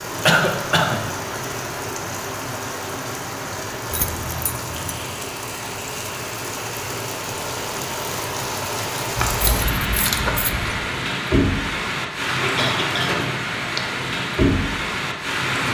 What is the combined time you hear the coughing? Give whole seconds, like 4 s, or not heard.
2 s.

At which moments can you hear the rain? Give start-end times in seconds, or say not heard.
0.0-15.6.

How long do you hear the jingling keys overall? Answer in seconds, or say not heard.
3 s.